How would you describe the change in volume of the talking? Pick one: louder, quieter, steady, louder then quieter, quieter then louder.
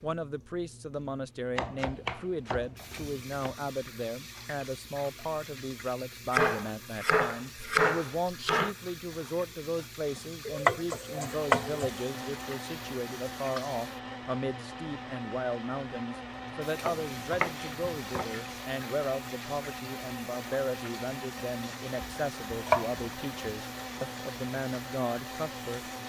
steady.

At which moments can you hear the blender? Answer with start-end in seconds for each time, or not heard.
11.0-26.0.